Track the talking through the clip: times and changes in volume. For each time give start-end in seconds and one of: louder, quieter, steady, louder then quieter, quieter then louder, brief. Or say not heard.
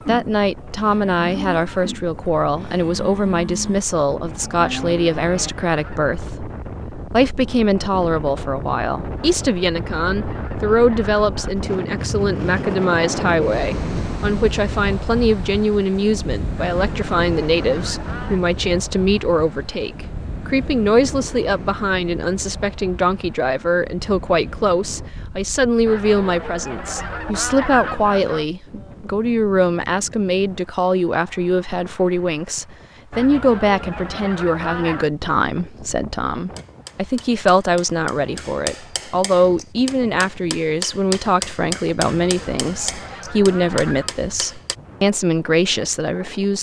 0.1-46.5 steady.